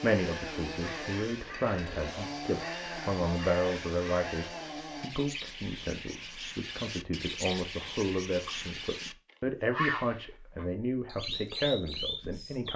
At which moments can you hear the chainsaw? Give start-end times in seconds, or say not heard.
0.0-5.1.